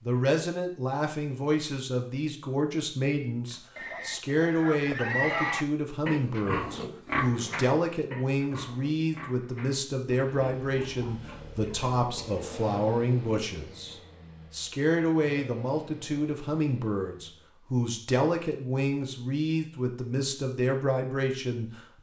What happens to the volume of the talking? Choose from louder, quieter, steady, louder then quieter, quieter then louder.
steady.